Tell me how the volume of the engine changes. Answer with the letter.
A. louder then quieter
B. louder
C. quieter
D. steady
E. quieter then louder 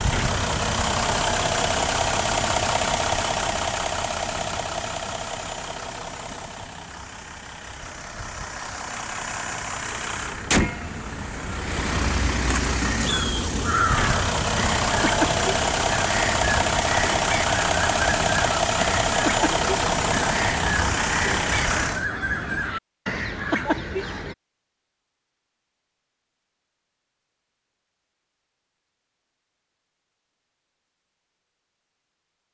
E.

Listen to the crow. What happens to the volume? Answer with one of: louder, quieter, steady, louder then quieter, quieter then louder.
steady.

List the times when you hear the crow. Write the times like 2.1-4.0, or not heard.
13.1-24.4.